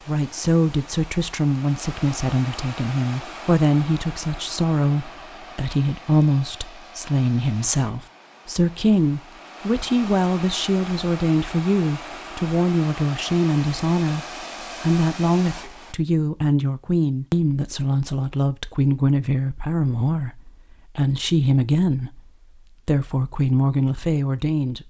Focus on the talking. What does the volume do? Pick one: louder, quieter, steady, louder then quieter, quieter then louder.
steady.